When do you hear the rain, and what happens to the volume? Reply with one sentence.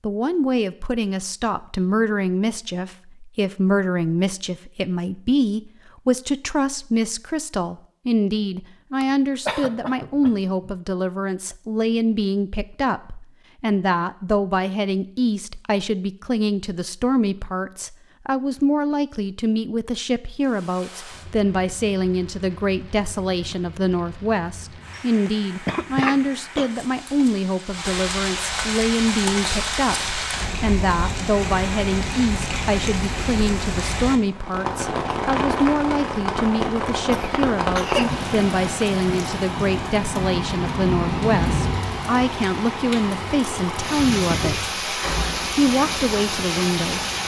The rain can be heard from 20.4 to 47.2 s, getting louder.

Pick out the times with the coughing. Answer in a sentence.
You can hear the coughing from 9.0 to 10.7 s, from 24.9 to 26.7 s and from 37.1 to 38.2 s.